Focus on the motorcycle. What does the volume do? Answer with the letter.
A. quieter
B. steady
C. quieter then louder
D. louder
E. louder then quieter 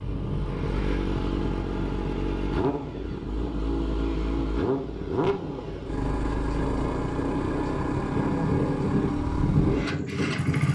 B.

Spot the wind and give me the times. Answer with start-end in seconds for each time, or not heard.
0.0-10.6.